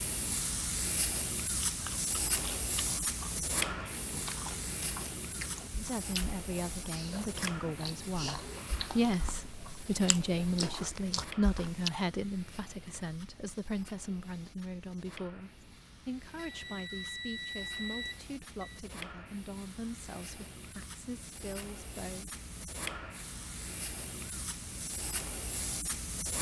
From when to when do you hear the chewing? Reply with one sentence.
The chewing can be heard from 1.5 to 11.9 s.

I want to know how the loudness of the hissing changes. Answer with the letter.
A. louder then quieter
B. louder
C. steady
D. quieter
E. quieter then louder
E.